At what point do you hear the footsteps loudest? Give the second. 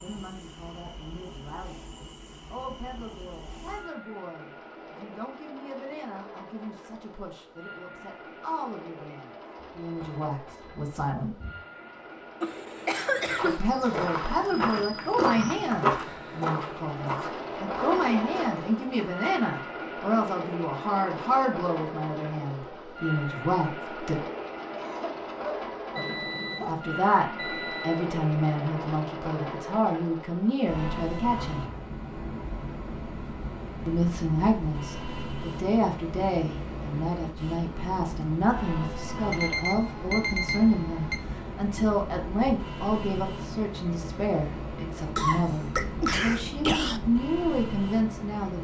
16 s.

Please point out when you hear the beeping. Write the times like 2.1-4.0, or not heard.
9.6-11.6, 25.9-28.1, 39.3-41.1.